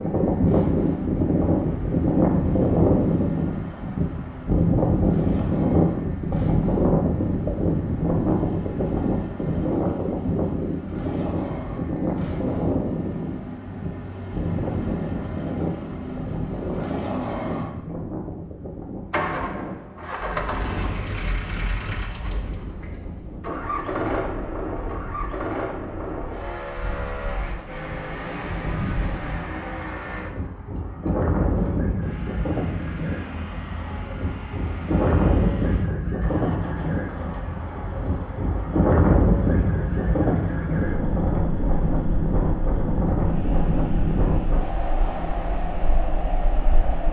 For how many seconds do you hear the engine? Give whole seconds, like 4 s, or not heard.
47 s.